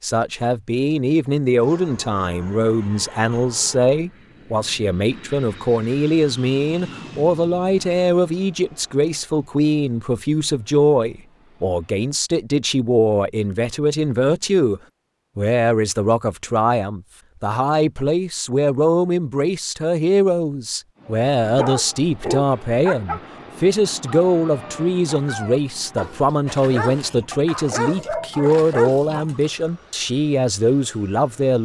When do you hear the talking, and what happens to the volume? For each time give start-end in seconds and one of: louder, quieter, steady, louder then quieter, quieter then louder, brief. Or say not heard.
0.0-31.5 steady.